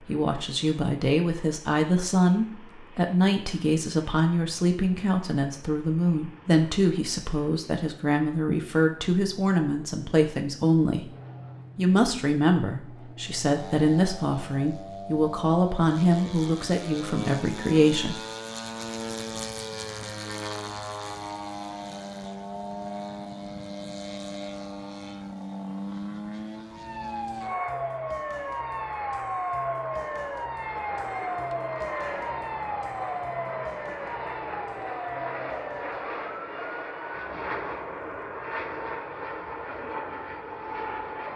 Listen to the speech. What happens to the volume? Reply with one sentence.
The volume of the speech stays about the same.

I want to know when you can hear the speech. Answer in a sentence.
You can hear the speech from 0.0 to 11.1 s and from 11.8 to 18.2 s.